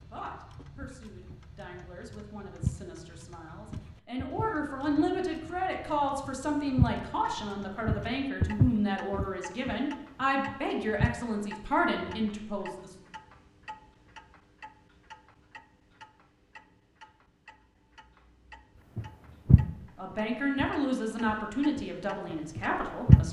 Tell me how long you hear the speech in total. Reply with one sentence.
You can hear the speech for 16 seconds altogether.